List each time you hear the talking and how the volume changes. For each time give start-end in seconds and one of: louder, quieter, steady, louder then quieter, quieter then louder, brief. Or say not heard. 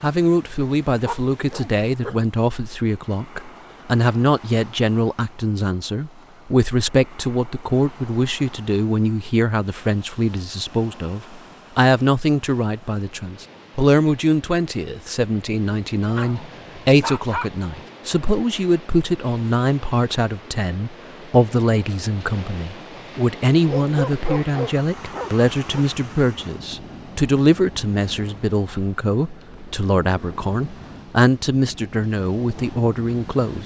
0.0-33.6 steady.